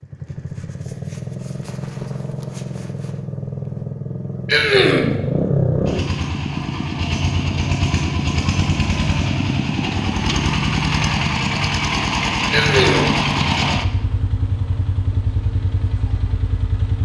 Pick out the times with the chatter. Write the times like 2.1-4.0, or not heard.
not heard.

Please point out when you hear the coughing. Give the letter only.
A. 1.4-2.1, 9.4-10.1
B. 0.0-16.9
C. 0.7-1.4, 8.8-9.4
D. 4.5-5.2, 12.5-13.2
D.